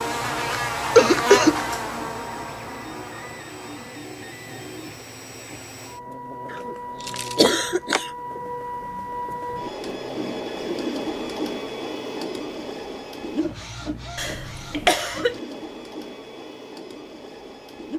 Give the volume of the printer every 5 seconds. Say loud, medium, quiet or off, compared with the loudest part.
medium, loud, loud, medium.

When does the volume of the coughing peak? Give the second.
1 s.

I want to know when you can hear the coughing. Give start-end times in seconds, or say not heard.
0.9-1.6, 6.5-8.1, 14.2-15.3.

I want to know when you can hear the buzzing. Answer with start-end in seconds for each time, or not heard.
0.0-10.3.